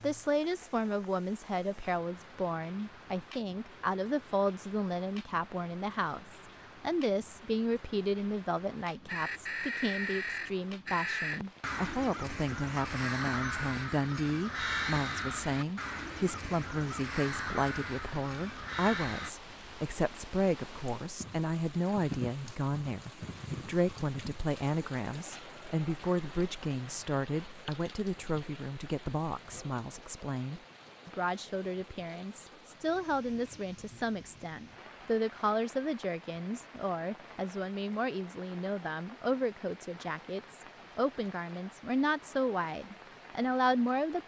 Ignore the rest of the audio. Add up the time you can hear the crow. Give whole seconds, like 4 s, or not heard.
10 s.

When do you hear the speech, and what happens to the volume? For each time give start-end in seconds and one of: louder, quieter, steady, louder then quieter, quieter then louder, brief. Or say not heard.
0.0-44.2 steady.